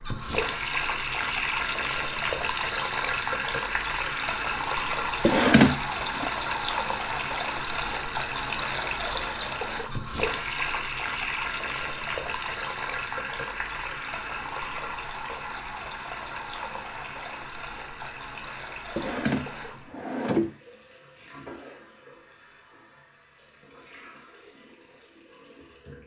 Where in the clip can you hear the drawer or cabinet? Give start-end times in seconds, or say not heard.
5.2-6.2, 18.9-20.6.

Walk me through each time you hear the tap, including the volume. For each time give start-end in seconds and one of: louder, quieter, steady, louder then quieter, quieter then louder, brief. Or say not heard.
0.0-26.0 quieter.